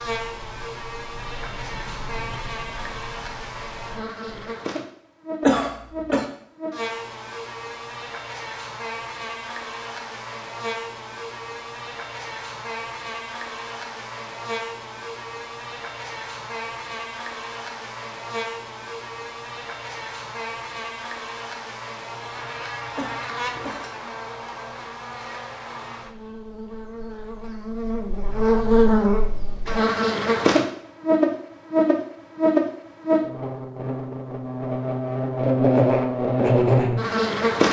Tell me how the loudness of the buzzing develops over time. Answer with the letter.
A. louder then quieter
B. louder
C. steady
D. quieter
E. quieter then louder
B.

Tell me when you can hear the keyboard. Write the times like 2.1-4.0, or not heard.
0.0-4.5.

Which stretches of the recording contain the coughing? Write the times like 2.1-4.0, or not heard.
5.4-6.2, 22.9-23.9.